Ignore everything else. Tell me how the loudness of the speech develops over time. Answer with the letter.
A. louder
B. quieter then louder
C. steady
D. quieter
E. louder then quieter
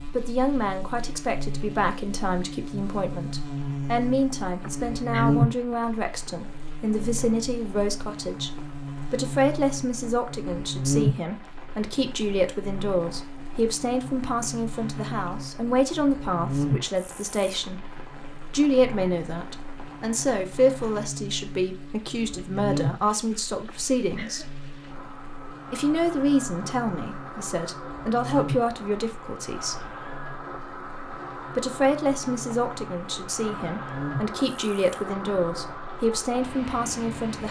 C.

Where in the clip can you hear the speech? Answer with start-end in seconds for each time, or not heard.
0.1-17.9, 18.5-24.5, 25.7-29.9, 31.4-37.4.